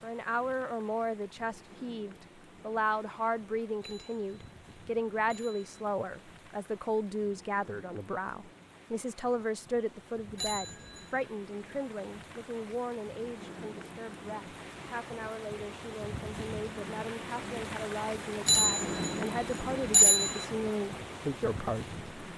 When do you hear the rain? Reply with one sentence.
You can hear the rain from 0.0 to 22.3 s.